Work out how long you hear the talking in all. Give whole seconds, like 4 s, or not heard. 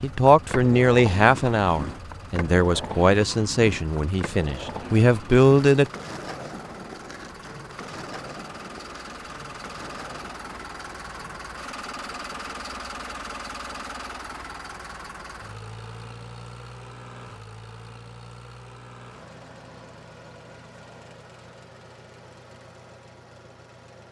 6 s.